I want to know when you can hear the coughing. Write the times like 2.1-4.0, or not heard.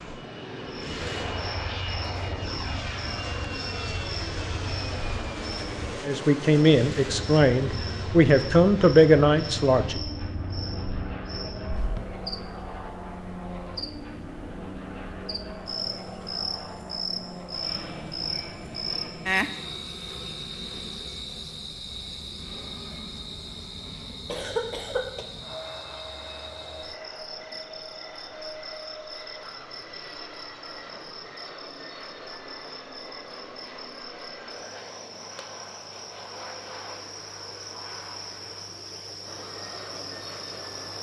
24.1-25.2.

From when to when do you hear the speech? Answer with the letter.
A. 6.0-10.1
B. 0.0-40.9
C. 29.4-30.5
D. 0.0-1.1
A.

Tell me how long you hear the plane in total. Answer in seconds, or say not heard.
41 s.